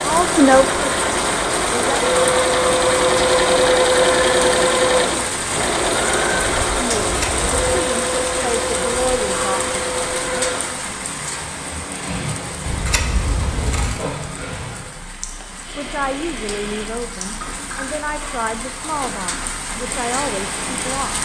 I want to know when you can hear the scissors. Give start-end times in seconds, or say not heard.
7.0-7.8, 12.7-14.1.